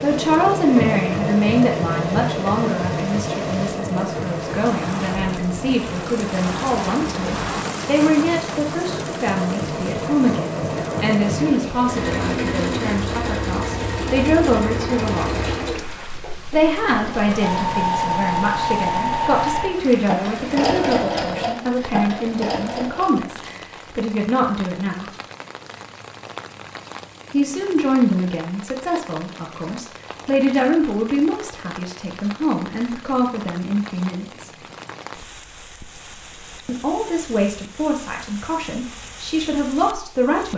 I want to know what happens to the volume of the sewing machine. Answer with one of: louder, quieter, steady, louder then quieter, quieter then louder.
quieter then louder.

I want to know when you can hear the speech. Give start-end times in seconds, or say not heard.
0.0-15.6, 16.5-25.1, 27.3-34.5, 36.6-40.5.